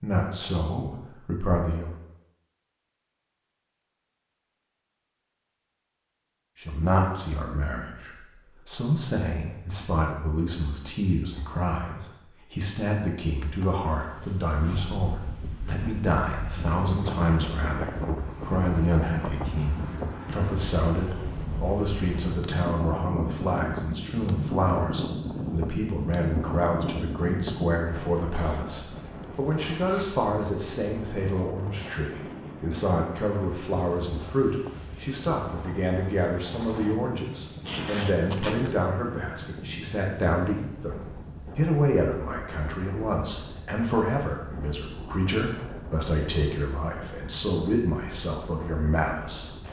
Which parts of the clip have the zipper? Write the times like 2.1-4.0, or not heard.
13.4-14.8, 28.3-30.1, 37.6-38.8.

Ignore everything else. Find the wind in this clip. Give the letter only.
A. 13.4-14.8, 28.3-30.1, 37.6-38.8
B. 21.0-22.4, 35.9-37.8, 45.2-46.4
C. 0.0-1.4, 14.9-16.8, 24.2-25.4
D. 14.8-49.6
D.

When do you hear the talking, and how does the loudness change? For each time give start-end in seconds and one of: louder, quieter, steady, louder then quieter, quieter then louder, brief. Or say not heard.
0.0-1.9 brief
6.5-49.5 steady.